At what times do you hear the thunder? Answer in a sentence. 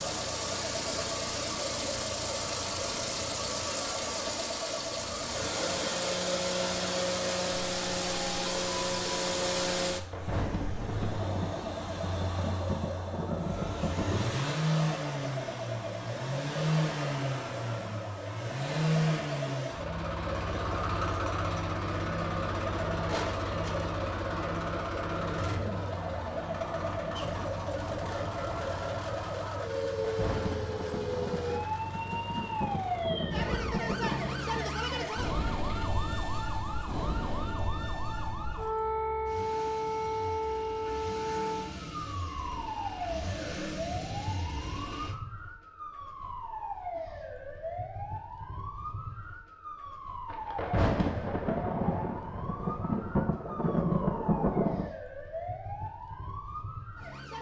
The thunder can be heard from 10.0 to 14.4 s, from 30.0 to 34.6 s and from 50.3 to 54.9 s.